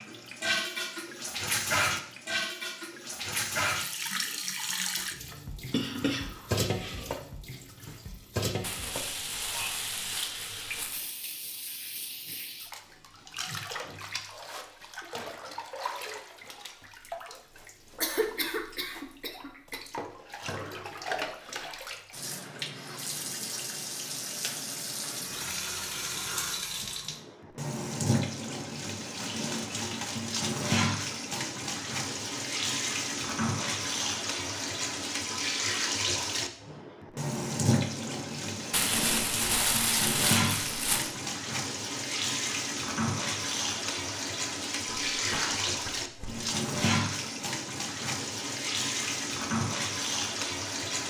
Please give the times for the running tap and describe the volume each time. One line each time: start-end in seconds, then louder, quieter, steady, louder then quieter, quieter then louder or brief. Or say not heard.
0.0-51.0 quieter then louder.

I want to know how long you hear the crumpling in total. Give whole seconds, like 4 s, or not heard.
5 s.